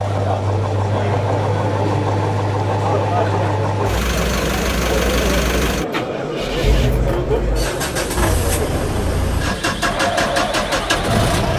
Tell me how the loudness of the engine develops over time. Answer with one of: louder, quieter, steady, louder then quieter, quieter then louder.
steady.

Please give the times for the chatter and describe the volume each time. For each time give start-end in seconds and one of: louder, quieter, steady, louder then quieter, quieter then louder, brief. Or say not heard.
0.0-11.5 steady.